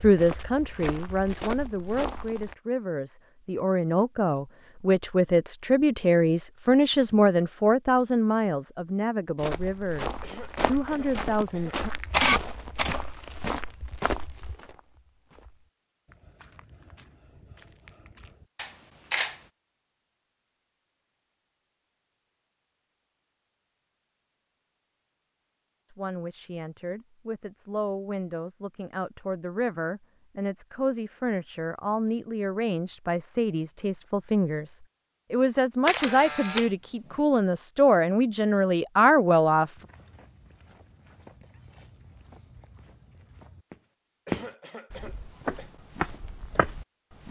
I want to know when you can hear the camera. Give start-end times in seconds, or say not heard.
12.1-12.9, 18.6-19.4, 35.9-36.6.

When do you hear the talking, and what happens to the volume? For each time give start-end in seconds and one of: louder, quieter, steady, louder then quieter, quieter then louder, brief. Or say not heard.
0.0-11.9 louder then quieter
25.9-39.7 louder.